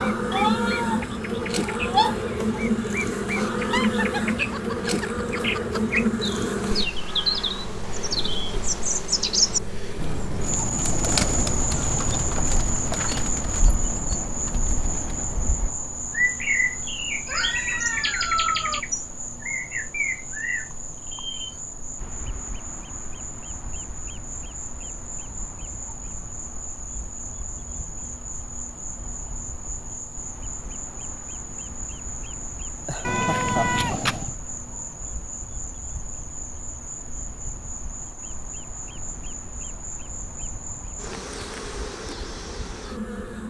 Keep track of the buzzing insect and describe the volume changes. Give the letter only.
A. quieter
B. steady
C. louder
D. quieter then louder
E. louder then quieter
A.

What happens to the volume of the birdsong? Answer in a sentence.
The volume of the birdsong goes down.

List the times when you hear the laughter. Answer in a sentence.
The laughter can be heard from 3.5 to 6.0 s and from 32.9 to 34.0 s.